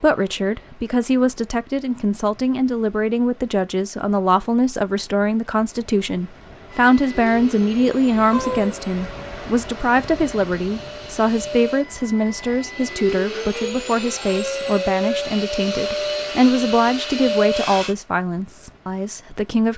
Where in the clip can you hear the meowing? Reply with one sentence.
You can hear the meowing from 8.3 to 8.8 s.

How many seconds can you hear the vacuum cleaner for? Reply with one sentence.
You can hear the vacuum cleaner for 11 seconds altogether.